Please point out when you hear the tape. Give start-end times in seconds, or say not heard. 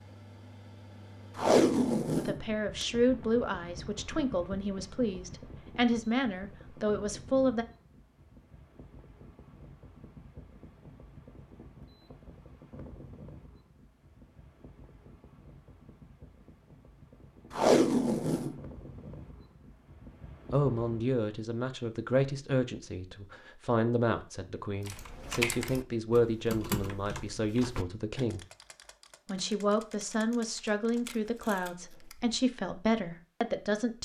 1.4-3.3, 17.5-18.6, 31.1-32.1.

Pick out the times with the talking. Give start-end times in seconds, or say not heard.
2.1-7.7, 20.5-28.4, 29.2-33.9.